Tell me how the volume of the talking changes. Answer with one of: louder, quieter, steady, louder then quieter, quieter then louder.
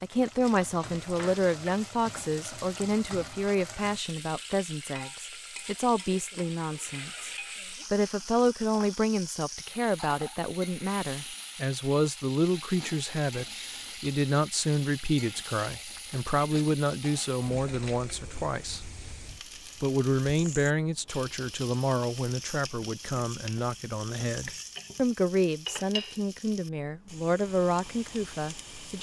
steady.